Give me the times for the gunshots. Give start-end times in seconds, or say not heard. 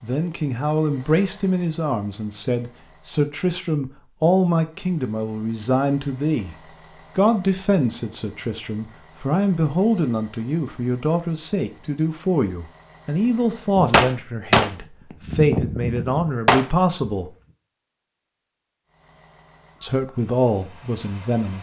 13.8-17.1.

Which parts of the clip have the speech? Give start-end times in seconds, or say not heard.
0.0-6.5, 7.2-17.3, 19.8-21.5.